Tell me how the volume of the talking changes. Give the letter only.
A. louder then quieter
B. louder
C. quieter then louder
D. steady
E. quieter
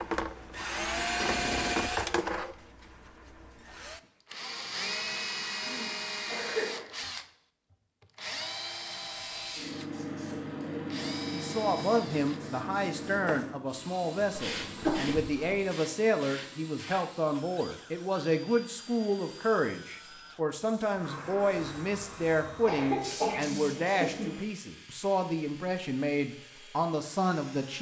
D.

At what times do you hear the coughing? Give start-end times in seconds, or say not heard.
5.7-6.9, 14.3-15.6, 22.6-24.4.